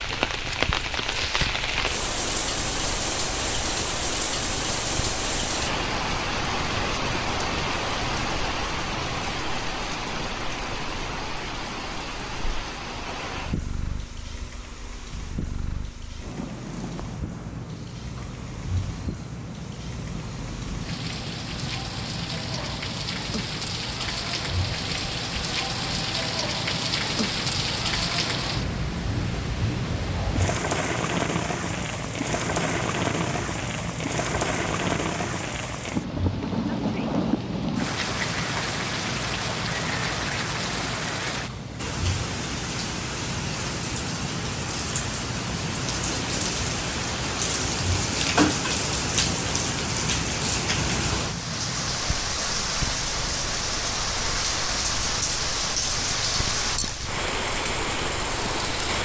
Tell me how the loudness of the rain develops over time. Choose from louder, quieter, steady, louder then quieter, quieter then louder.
quieter then louder.